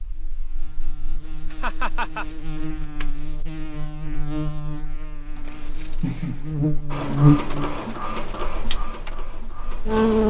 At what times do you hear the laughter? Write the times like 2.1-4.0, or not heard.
1.5-2.2, 5.3-6.8.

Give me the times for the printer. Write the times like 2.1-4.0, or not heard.
6.9-10.2.